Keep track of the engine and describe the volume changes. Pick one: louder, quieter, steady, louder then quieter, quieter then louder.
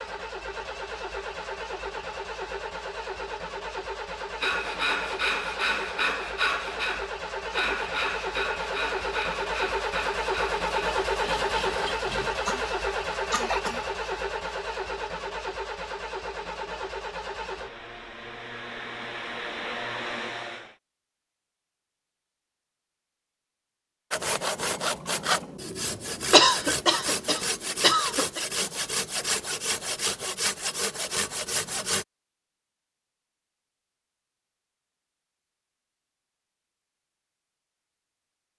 louder then quieter.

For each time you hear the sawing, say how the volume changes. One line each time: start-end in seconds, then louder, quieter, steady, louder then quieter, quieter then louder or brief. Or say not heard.
4.4-12.3 quieter
24.1-32.0 steady.